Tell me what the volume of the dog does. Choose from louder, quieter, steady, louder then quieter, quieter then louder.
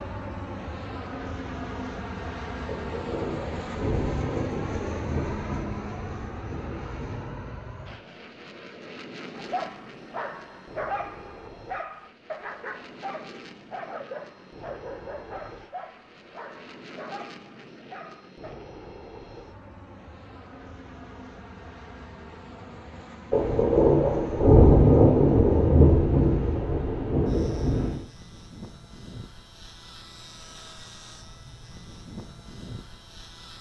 quieter.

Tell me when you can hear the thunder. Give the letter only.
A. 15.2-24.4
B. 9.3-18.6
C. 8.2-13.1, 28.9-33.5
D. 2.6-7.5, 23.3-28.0
D.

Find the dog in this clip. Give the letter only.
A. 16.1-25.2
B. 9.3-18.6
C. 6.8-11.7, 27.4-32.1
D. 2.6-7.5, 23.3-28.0
B.